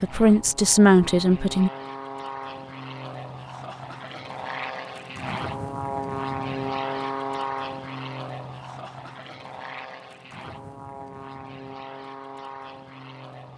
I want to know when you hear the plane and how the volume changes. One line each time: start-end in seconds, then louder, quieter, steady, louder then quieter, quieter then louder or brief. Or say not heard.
0.0-13.5 louder then quieter.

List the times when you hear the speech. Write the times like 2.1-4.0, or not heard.
0.0-1.7.